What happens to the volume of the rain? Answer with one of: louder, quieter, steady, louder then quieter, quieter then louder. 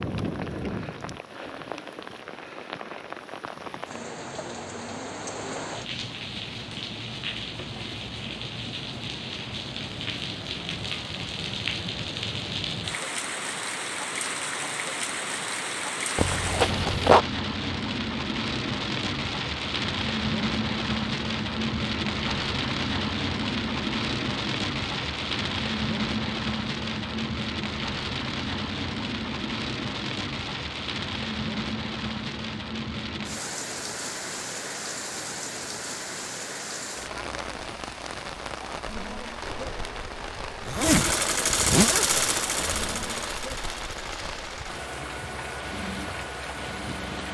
louder then quieter.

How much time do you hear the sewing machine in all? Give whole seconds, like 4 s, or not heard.
8 s.